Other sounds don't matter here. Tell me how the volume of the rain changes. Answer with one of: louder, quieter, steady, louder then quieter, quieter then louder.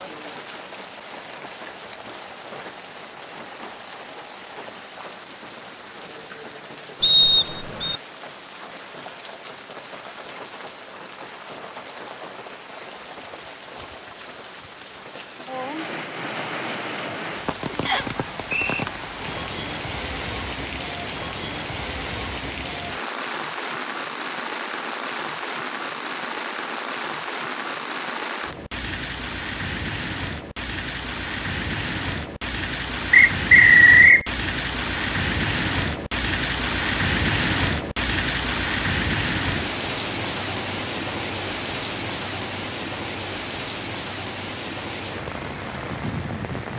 louder.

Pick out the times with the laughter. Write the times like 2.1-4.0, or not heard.
not heard.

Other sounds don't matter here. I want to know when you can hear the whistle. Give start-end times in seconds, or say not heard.
7.0-8.0, 17.9-18.9, 33.1-34.2.